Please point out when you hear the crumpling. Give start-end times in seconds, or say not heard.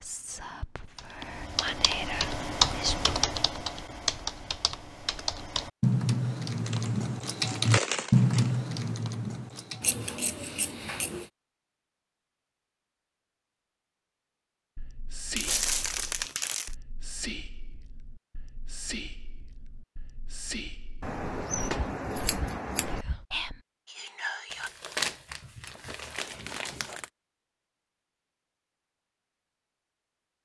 6.7-8.6, 15.3-16.8, 24.5-27.1.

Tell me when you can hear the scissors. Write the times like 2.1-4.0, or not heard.
9.8-11.3, 21.0-23.1.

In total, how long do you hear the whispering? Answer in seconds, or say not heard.
13 s.